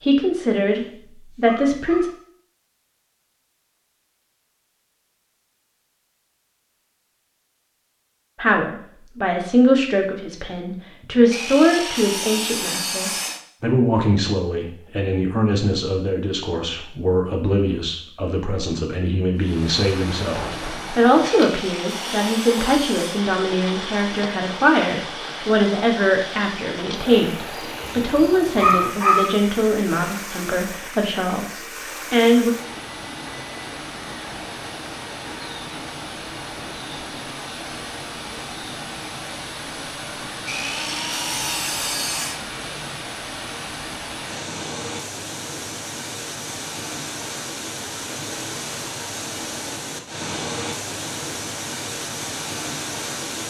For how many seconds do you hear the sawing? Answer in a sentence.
The sawing can be heard for 6 seconds in total.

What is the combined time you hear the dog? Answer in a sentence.
You can hear the dog for 3 seconds altogether.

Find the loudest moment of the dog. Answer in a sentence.
The volume of the dog peaks at 29 seconds.